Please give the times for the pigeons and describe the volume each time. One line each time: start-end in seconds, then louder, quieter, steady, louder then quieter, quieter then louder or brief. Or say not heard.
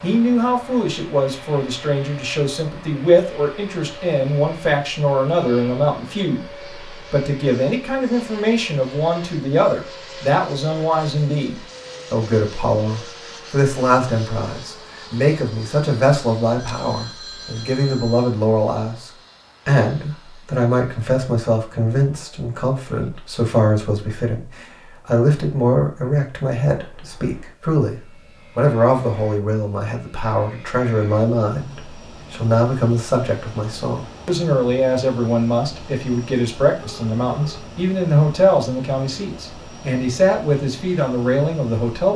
not heard.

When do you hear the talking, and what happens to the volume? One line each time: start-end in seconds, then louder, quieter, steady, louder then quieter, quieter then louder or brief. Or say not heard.
0.0-42.1 steady.